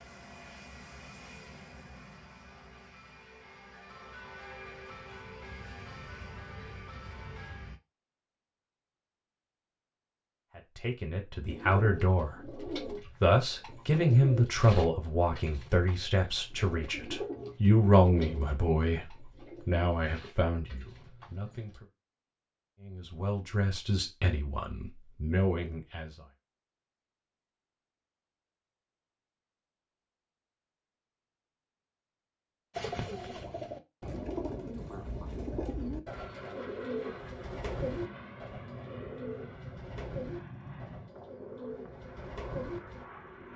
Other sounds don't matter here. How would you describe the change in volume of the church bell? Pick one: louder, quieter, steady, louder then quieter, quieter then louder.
louder.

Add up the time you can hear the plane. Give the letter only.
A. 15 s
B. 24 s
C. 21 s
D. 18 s
A.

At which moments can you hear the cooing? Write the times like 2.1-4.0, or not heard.
11.4-21.8, 32.8-43.0.